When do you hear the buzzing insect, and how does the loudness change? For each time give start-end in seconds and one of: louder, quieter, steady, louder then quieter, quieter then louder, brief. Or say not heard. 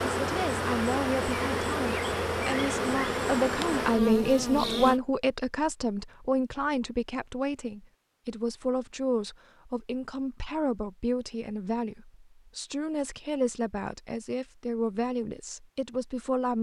0.0-5.0 steady.